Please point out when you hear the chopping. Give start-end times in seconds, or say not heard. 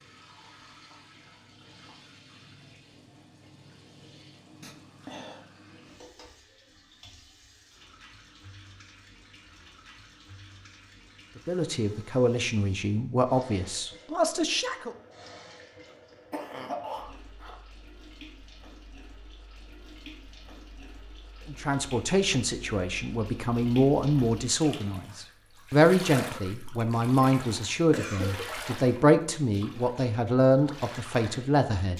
not heard.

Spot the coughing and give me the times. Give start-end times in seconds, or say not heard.
4.6-5.5, 16.3-17.6, 27.9-28.4.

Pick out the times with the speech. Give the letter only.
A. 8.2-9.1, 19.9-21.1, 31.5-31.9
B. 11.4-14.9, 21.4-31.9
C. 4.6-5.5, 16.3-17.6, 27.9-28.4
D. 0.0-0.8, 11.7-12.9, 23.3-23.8
B.